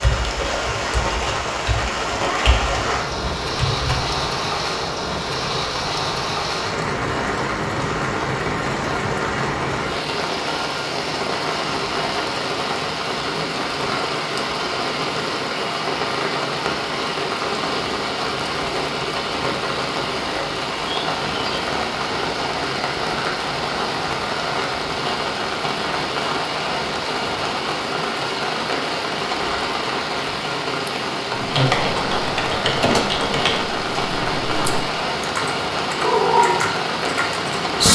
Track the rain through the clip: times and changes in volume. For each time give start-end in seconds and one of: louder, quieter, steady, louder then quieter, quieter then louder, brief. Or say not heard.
0.0-37.8 steady.